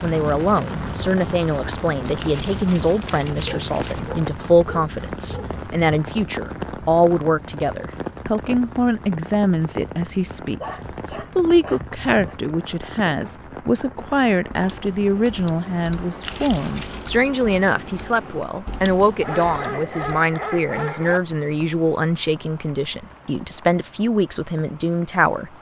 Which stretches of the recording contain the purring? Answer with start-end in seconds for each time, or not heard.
not heard.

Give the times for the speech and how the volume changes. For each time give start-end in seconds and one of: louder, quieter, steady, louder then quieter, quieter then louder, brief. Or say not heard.
0.0-25.5 steady.